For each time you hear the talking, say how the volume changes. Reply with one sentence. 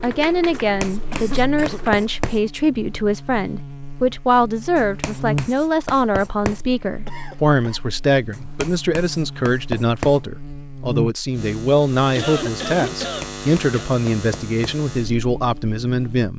The talking can be heard from 0.0 to 16.3 s, at a steady volume.